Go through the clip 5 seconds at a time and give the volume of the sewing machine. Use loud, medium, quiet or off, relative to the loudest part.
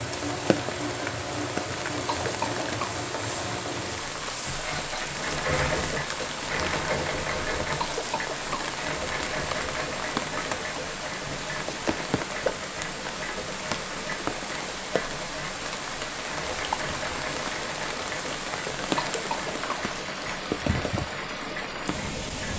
loud, loud, medium, medium, medium.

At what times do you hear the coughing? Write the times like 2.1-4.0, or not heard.
2.0-3.0, 7.8-8.8, 18.9-19.9.